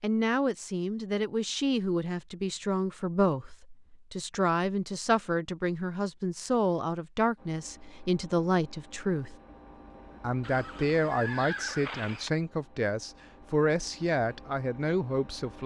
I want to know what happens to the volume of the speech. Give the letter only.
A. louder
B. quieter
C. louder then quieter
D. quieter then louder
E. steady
E.